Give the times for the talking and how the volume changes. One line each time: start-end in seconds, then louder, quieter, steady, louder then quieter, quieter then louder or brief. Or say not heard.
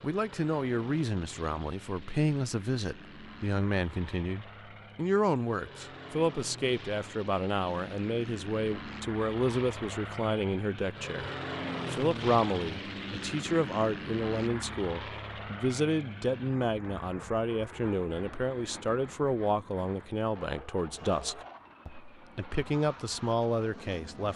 0.0-24.3 steady.